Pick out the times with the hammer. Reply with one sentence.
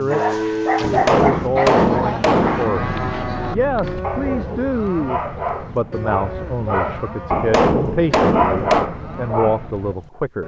You can hear the hammer from 0.8 to 2.8 s and from 7.3 to 8.9 s.